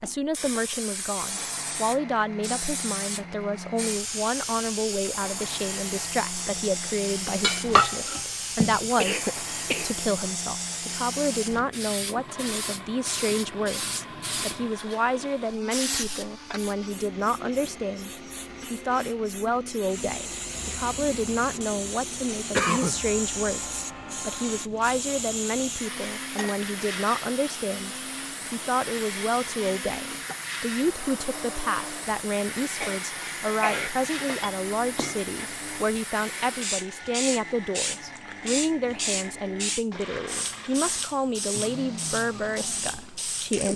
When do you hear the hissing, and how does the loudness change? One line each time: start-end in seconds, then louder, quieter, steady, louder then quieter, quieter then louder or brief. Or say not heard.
0.3-43.7 steady.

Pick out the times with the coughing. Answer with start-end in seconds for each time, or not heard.
8.8-10.1, 22.5-23.0, 32.8-33.9.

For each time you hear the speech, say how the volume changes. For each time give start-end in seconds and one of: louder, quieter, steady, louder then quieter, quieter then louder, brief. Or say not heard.
0.0-18.1 steady
18.7-43.7 steady.